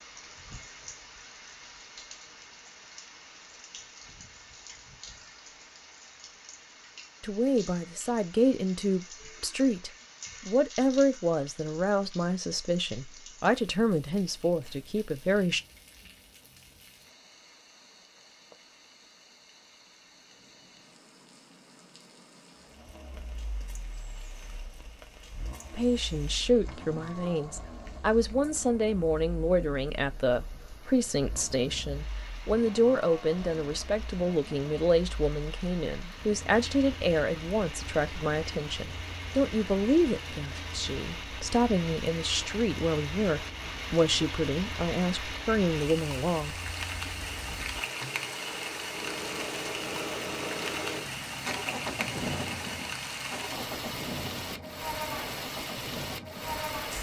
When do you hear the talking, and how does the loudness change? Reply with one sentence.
You can hear the talking from 7.2 to 15.6 s, at a steady volume; and from 25.7 to 46.5 s, at a steady volume.